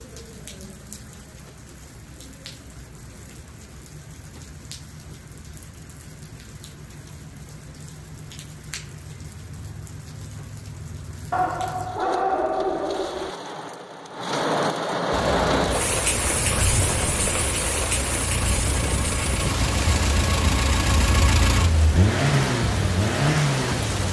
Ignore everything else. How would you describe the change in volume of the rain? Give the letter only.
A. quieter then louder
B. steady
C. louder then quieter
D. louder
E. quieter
C.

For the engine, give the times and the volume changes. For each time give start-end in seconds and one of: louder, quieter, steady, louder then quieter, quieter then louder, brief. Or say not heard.
15.1-24.0 louder.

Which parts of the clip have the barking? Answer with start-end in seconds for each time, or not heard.
11.3-13.3.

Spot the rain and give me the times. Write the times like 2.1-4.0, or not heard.
0.0-24.0.